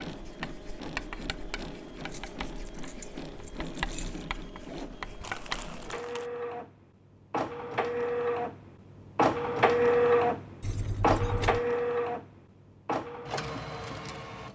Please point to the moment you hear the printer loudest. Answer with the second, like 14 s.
10 s.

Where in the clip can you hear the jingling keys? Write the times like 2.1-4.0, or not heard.
2.0-4.2, 10.6-11.6.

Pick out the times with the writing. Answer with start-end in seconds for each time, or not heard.
0.0-5.8.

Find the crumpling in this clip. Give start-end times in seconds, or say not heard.
5.2-6.3.